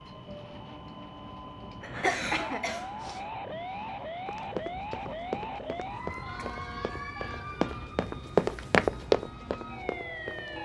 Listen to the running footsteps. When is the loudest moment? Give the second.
9 s.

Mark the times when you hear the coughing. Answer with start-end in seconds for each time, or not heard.
1.8-3.2.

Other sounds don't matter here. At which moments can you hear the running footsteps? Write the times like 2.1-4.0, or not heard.
4.2-10.6.